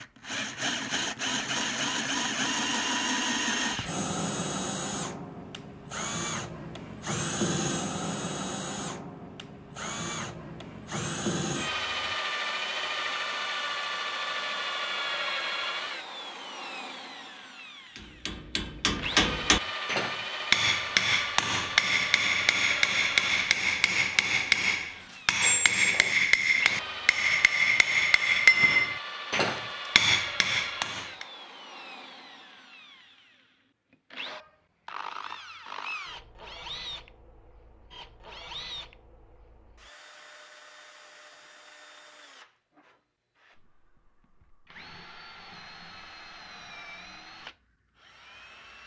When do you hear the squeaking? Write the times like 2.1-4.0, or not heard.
25.4-26.1.